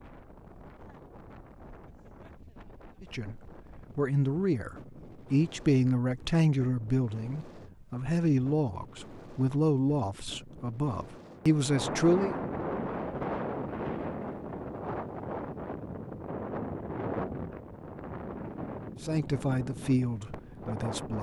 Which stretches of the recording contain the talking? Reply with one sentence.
You can hear the talking from 3.0 to 12.3 s and from 19.0 to 21.1 s.